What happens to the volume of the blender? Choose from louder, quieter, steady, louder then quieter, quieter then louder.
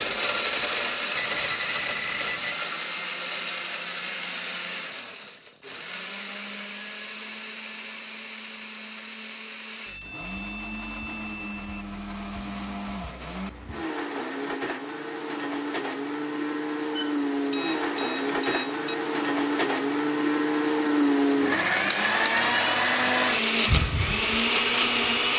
quieter then louder.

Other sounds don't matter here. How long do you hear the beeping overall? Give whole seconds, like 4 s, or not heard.
5 s.